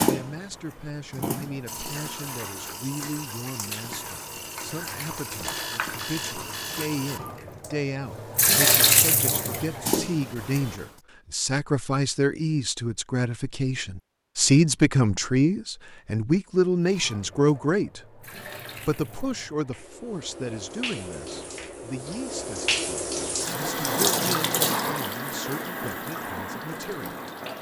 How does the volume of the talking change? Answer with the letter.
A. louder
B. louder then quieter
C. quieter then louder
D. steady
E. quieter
B.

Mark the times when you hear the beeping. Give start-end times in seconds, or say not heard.
5.3-7.0.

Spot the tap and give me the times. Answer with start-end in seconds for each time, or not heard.
0.0-10.8, 16.8-27.5.